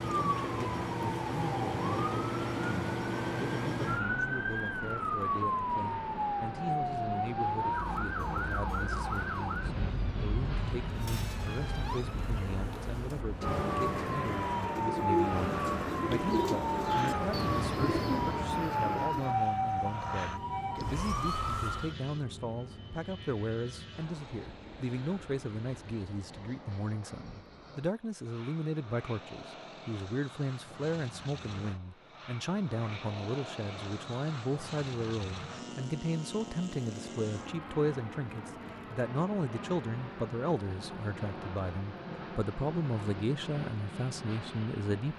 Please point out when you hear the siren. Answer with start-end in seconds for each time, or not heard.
0.0-21.9.